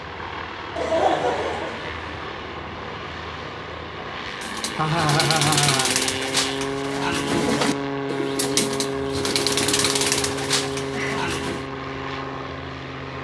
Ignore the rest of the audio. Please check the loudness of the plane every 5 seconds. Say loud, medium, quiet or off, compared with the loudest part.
medium, loud, loud.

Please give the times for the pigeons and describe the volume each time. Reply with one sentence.
You can hear the pigeons from 4.4 to 11.7 s, at a steady volume.